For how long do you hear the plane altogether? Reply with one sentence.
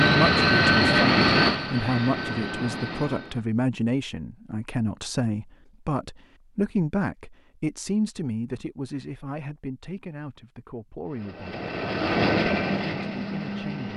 The plane can be heard for 6 seconds in total.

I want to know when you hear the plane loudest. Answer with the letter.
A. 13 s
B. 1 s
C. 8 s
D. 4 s
B.